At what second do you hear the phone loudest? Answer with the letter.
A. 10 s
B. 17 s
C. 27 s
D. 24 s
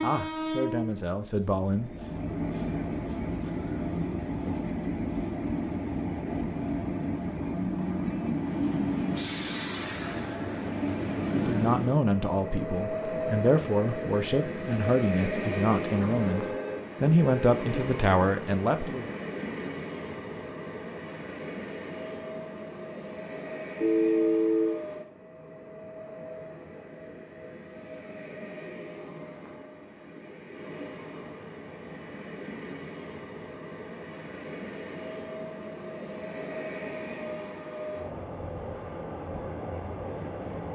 D.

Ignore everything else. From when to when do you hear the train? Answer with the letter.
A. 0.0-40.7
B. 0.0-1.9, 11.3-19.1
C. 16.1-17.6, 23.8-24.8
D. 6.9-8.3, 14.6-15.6
A.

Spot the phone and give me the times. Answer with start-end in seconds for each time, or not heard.
16.1-17.6, 23.8-24.8.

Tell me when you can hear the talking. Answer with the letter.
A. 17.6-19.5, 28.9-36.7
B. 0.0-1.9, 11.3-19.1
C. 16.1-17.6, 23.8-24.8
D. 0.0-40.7
B.